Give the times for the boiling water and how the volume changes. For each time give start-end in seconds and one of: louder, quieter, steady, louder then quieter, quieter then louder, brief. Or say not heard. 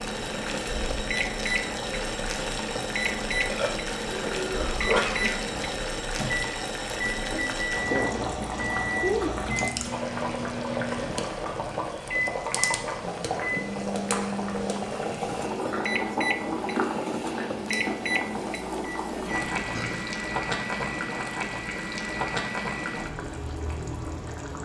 0.0-24.6 steady.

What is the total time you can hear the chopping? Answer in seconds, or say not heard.
not heard.